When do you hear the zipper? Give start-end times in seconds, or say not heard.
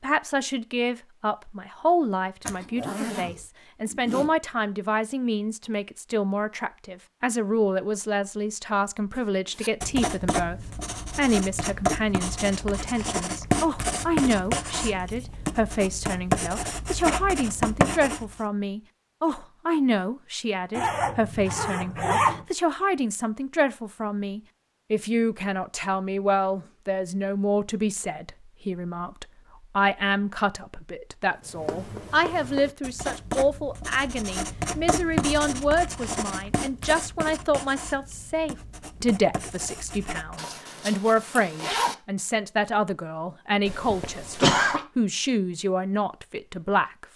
2.5-4.3, 20.7-22.4, 40.4-42.0.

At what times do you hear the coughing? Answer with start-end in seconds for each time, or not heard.
43.6-44.9.